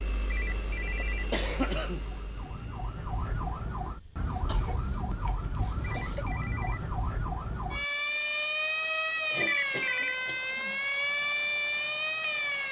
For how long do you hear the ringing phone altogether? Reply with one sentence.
The ringing phone can be heard for 3 seconds in total.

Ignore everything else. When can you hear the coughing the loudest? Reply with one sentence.
The volume of the coughing peaks at 1 second.